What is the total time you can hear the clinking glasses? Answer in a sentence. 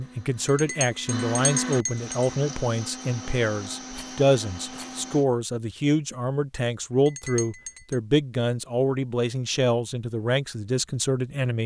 You can hear the clinking glasses for 3 seconds altogether.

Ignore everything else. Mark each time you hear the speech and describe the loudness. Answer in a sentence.
You can hear the speech from 0.0 to 11.6 s, at a steady volume.